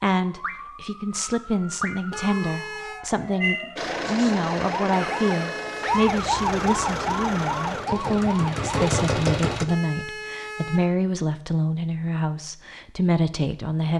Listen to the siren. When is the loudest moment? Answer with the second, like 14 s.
6 s.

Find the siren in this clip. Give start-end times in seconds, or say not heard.
0.2-8.9.